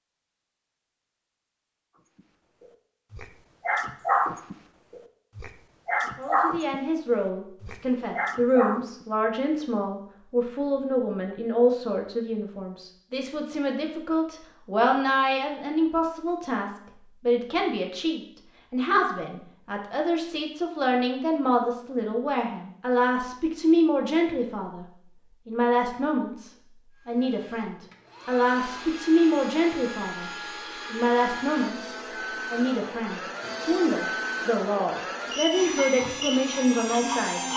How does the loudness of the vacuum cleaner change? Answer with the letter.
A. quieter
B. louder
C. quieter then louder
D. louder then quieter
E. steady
B.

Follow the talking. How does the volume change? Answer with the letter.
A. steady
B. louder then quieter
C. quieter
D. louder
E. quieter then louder
A.